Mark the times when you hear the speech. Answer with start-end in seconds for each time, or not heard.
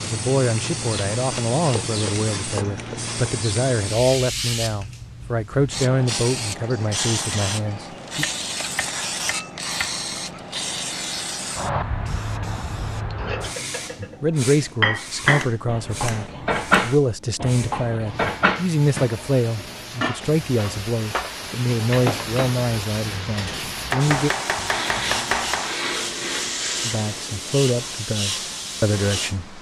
0.0-8.2, 14.0-24.3, 26.8-29.5.